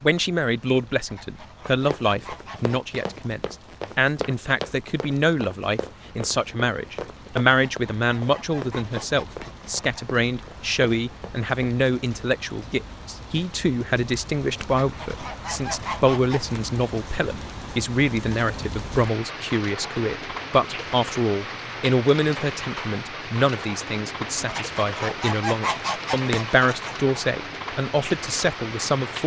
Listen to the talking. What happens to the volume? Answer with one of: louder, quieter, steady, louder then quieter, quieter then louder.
steady.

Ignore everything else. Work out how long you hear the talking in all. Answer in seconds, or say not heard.
29 s.